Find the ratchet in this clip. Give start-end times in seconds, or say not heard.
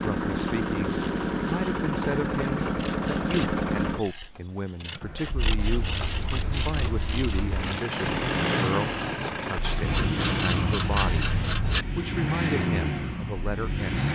0.3-1.9, 5.5-7.8, 9.8-11.8.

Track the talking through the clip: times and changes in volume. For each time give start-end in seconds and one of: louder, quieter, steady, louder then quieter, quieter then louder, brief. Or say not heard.
0.0-11.3 steady
11.9-14.1 brief.